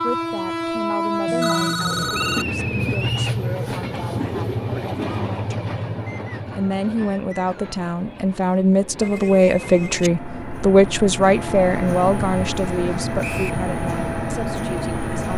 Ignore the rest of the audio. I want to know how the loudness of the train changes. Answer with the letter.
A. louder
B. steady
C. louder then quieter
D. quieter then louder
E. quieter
D.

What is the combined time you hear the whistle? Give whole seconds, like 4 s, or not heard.
3 s.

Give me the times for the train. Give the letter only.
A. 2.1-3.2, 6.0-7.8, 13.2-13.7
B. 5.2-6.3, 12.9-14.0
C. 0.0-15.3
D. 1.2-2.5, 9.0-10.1
C.